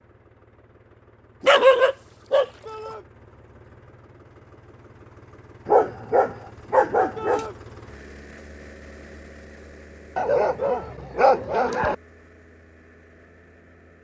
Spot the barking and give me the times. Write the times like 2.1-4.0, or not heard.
1.4-2.9, 5.7-7.5, 10.2-11.9.